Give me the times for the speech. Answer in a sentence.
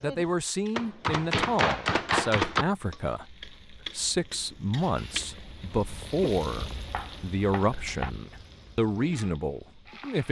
The speech can be heard from 0.0 to 10.2 s.